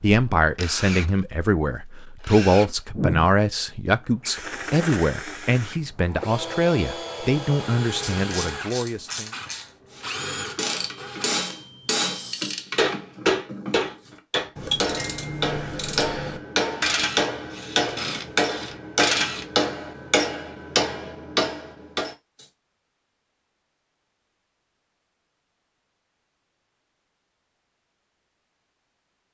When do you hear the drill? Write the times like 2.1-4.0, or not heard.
0.1-12.6.